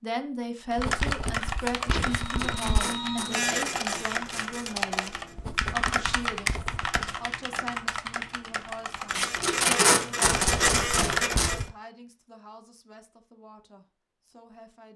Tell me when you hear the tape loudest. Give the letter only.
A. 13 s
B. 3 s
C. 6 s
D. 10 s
D.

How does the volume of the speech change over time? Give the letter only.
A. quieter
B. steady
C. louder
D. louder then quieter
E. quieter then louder
A.